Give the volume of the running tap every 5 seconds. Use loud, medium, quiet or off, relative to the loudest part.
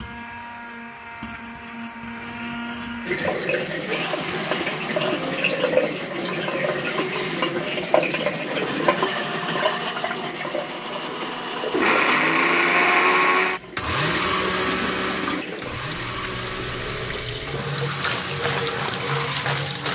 loud, loud, medium, loud.